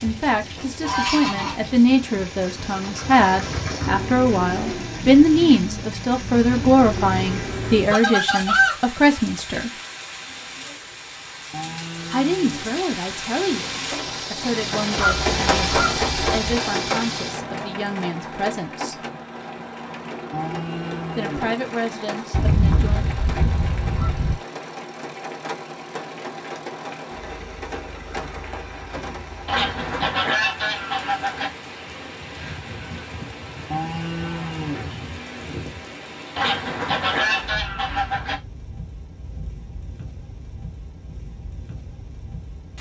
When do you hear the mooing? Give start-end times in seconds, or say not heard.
11.5-12.8, 20.3-21.6, 33.7-34.9.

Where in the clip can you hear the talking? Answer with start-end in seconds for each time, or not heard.
0.0-9.8, 12.1-19.0, 21.1-23.1.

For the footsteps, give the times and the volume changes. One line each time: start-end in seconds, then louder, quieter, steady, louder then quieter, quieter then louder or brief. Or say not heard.
not heard.